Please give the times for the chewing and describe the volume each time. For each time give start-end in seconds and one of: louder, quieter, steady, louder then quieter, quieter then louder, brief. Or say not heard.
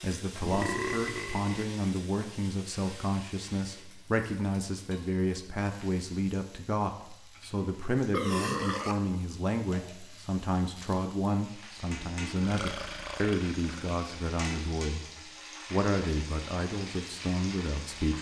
not heard.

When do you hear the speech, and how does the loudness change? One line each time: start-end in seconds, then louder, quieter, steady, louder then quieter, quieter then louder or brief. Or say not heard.
0.0-15.1 steady
15.7-18.1 brief.